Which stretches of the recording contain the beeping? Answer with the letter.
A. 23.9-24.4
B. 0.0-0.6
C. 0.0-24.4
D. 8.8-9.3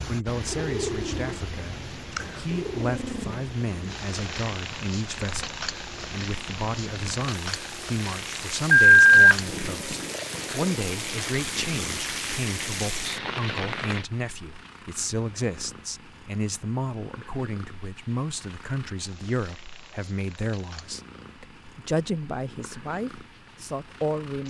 D.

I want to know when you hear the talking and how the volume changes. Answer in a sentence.
The talking can be heard from 0.0 to 24.4 s, at a steady volume.